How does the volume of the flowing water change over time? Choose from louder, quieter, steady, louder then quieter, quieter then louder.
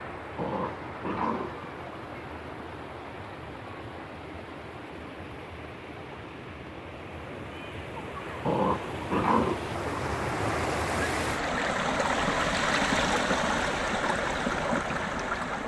louder.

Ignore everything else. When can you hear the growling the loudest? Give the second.
9 s.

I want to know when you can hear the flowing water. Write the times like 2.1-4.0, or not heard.
0.0-15.6.